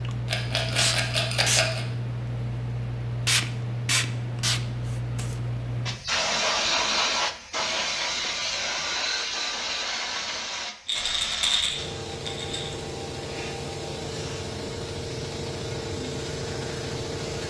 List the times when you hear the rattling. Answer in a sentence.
The rattling can be heard from 0.2 to 1.9 s and from 10.8 to 12.8 s.